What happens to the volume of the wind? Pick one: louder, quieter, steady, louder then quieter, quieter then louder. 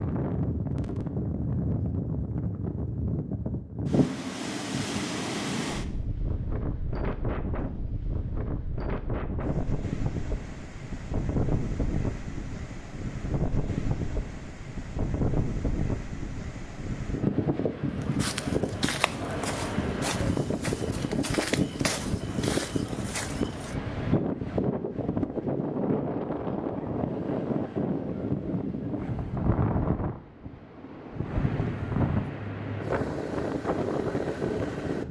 steady.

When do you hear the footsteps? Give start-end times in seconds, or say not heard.
18.0-23.8.